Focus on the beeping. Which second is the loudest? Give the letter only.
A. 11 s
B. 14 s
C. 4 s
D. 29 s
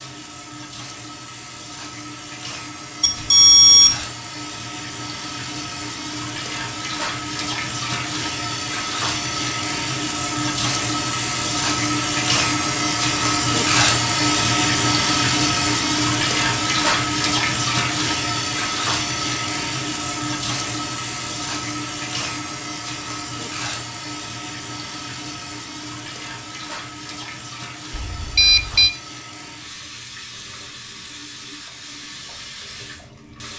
C.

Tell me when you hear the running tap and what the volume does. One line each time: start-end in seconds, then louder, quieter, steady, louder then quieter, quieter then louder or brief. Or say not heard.
0.0-33.5 louder then quieter.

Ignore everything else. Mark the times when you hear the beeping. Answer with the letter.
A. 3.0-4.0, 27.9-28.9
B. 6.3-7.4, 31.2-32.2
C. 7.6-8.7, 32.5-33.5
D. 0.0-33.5
A.